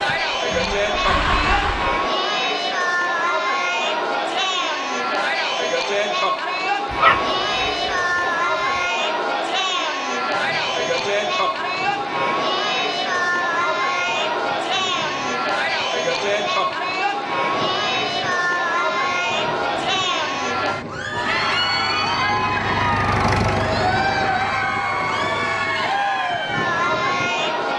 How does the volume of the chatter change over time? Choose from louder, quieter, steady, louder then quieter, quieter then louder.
steady.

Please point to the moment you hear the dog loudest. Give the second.
7 s.